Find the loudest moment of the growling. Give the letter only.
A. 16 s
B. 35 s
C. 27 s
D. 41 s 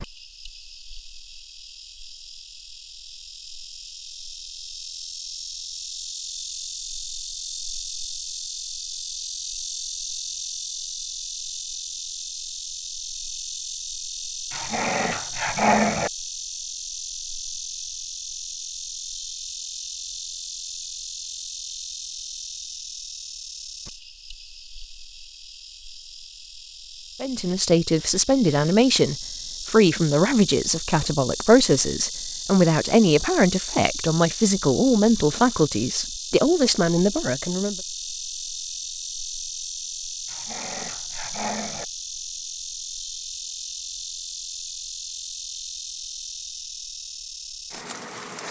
A.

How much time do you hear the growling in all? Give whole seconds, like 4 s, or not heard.
3 s.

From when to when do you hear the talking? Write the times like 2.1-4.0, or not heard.
27.2-37.8.